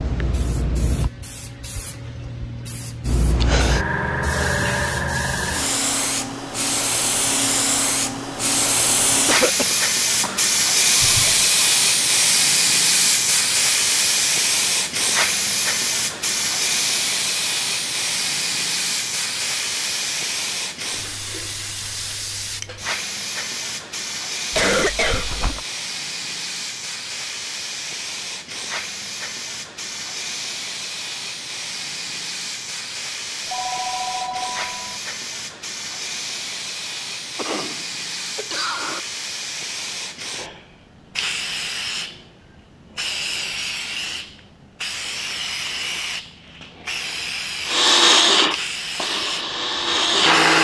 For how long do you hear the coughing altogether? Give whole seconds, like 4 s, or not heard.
4 s.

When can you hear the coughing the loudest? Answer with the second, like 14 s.
25 s.